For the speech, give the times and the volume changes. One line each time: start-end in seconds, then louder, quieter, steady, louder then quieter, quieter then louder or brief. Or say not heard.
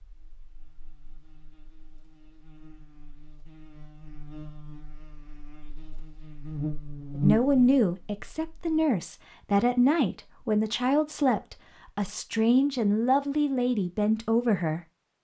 7.2-14.8 steady.